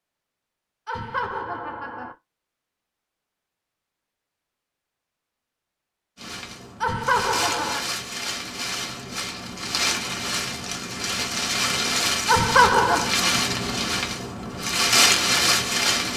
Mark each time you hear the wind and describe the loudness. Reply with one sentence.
The wind can be heard from 6.2 to 16.1 s, getting louder.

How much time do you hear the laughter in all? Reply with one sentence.
You can hear the laughter for 3 seconds altogether.